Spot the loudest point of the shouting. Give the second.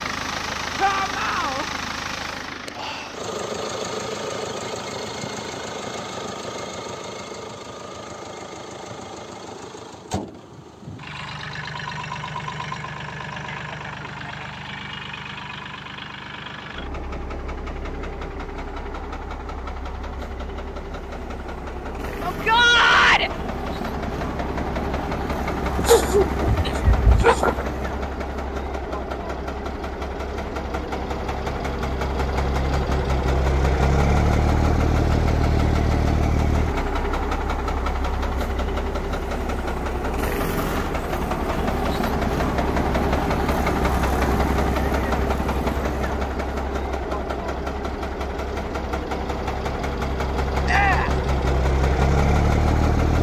23 s.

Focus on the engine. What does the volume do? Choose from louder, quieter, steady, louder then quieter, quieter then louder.
louder.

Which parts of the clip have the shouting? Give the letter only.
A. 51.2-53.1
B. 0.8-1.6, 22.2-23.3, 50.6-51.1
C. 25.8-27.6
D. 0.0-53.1
B.